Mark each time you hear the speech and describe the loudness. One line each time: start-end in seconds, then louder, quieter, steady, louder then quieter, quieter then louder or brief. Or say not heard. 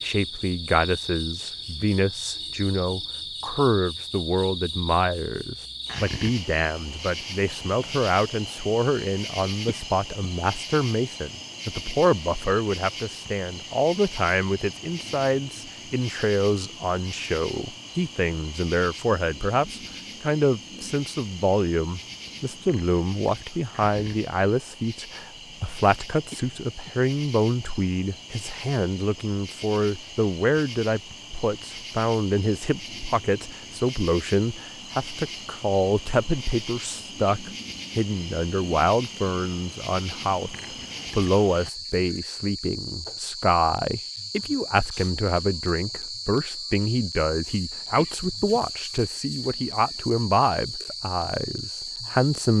0.0-52.5 steady.